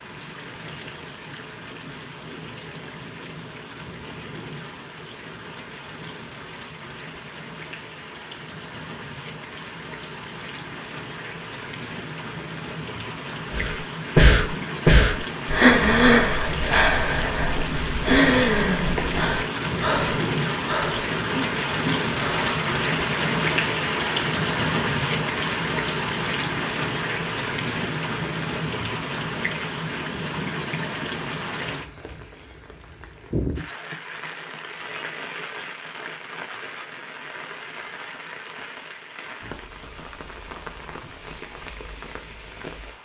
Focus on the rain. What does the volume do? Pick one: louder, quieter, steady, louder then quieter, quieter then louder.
louder then quieter.